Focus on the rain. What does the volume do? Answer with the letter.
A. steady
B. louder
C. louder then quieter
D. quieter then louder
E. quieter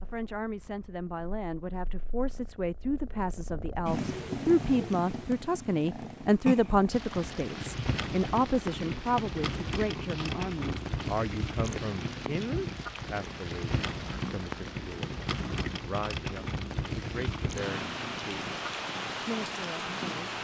A.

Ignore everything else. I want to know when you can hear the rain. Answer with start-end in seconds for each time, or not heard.
6.9-20.3.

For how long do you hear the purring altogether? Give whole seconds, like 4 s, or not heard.
20 s.